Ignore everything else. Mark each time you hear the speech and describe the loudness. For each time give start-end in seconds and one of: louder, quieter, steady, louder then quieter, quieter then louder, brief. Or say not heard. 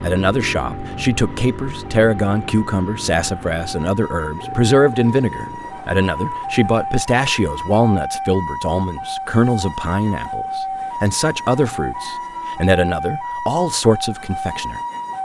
0.0-14.8 steady.